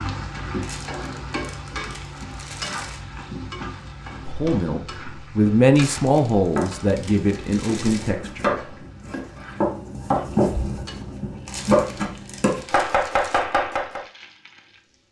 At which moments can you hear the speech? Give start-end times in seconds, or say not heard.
4.2-8.7.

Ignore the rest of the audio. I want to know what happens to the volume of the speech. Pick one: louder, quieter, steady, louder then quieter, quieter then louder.
louder then quieter.